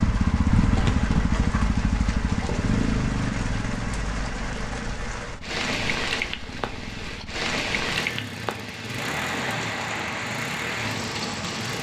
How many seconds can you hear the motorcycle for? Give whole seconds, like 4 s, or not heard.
12 s.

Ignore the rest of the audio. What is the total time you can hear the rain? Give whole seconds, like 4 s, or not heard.
12 s.